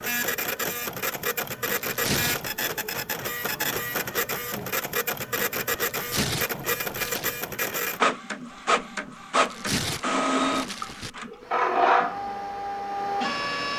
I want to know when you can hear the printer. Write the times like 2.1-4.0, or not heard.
0.0-13.7.